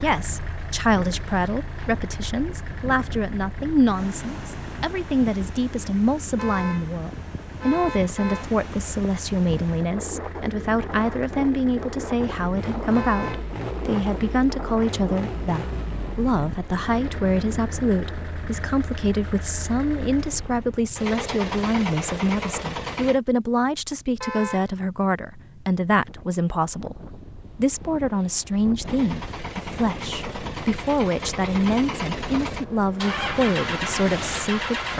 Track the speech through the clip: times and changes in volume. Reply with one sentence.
You can hear the speech from 0.0 to 34.9 s, at a steady volume.